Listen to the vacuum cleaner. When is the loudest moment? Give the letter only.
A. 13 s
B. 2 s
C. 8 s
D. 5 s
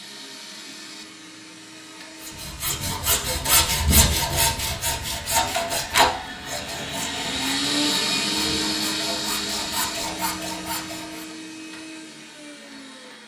C.